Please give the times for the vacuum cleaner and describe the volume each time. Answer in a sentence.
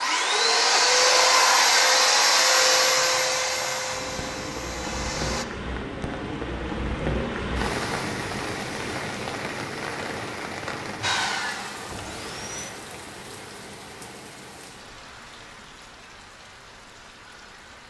You can hear the vacuum cleaner from 0.0 to 5.5 s, getting quieter; and briefly from 11.0 to 12.7 s.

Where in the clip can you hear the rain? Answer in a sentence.
You can hear the rain from 0.0 to 17.8 s.